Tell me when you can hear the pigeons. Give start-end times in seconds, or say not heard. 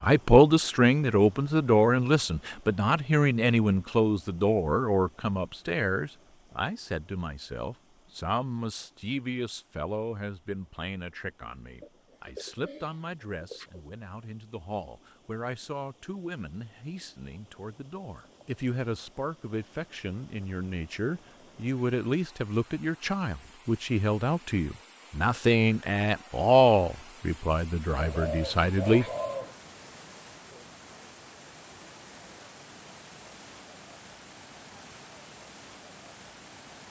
11.8-13.8, 27.9-29.6.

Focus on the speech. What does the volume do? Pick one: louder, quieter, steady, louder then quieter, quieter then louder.
quieter then louder.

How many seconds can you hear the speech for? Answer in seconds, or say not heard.
29 s.